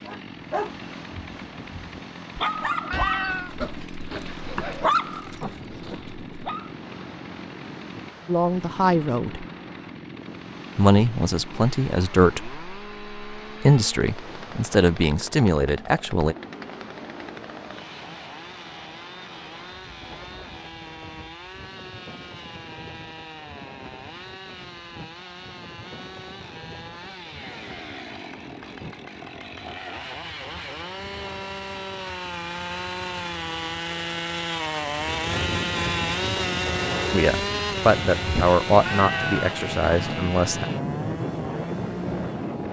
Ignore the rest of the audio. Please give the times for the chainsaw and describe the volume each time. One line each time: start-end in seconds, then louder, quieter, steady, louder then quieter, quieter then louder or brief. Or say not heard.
0.0-42.6 louder.